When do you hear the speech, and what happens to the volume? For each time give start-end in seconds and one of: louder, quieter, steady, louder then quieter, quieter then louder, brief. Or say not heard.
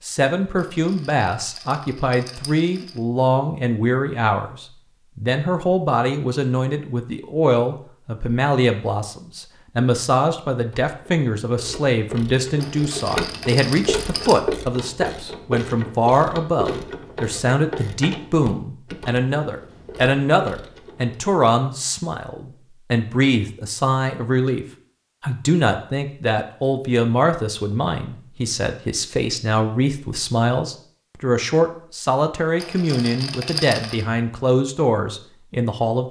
0.0-36.0 steady.